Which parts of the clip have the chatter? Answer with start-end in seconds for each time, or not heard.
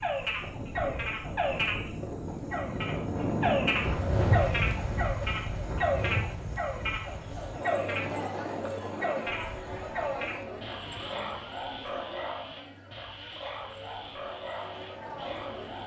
6.8-15.8.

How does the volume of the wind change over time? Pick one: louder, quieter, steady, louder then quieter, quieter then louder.
louder then quieter.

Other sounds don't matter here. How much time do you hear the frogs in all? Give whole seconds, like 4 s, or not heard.
16 s.